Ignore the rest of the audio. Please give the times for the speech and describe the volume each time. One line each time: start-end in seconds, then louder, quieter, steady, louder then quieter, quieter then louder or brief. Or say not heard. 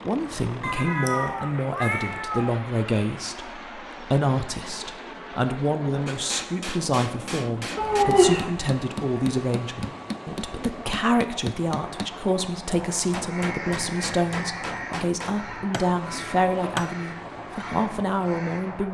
0.0-18.8 steady.